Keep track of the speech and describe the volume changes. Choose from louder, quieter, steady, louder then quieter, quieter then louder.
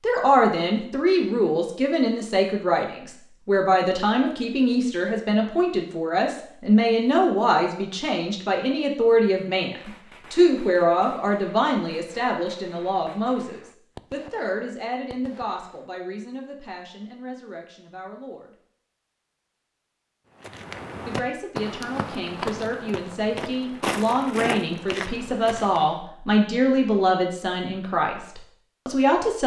quieter then louder.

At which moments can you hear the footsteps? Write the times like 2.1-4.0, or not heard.
20.4-26.0.